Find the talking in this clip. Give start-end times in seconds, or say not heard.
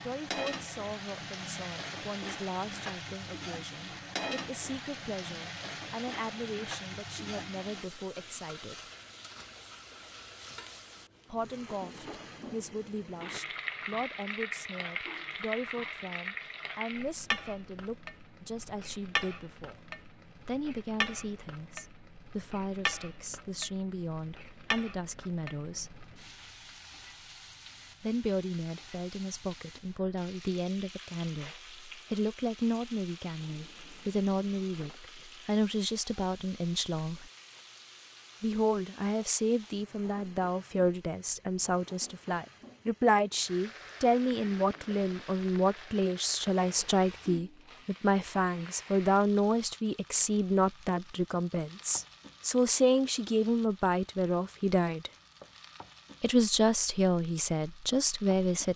0.0-8.8, 11.3-19.8, 20.4-25.9, 28.0-37.3, 38.4-55.1, 56.2-58.7.